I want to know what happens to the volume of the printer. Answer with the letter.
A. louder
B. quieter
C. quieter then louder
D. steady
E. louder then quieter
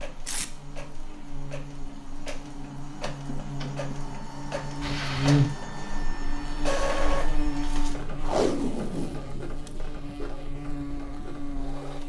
E.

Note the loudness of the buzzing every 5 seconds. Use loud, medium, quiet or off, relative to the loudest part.
medium, loud, medium.